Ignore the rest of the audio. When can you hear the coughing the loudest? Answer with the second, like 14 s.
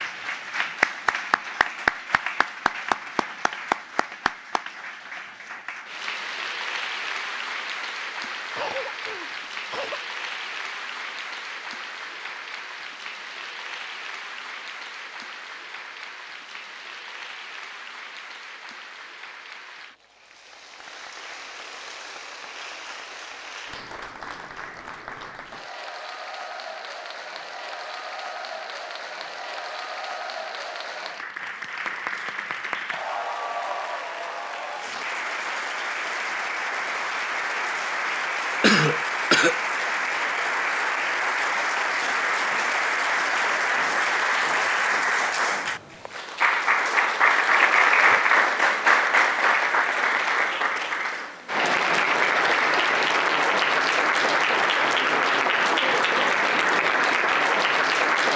39 s.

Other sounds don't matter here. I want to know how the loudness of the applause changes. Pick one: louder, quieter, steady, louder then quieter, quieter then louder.
quieter then louder.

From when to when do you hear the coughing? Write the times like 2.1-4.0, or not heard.
8.6-10.0, 38.6-39.5.